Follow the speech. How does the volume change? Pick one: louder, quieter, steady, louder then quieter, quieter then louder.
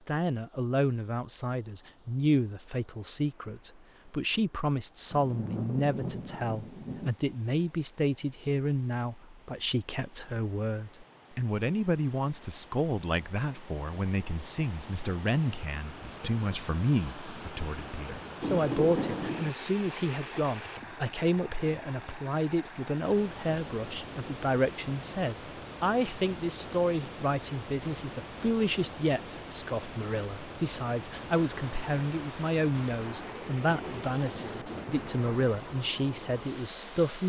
steady.